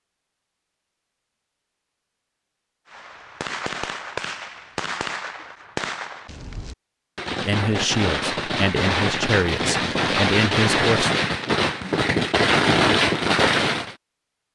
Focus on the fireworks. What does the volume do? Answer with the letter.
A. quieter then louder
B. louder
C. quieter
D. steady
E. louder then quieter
B.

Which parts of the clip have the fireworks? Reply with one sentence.
The fireworks can be heard from 2.9 to 13.9 s.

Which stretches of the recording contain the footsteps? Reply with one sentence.
The footsteps can't be heard in this clip.